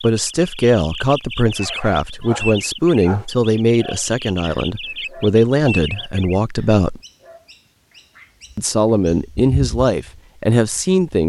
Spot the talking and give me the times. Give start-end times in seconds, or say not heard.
0.0-7.0, 8.6-11.2.